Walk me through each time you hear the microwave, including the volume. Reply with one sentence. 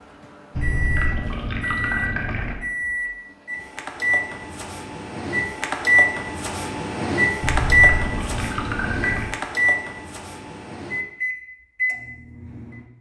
You can hear the microwave from 0.0 to 12.8 s, getting louder then quieter.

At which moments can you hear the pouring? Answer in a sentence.
The pouring can be heard from 0.5 to 2.5 s and from 7.4 to 9.3 s.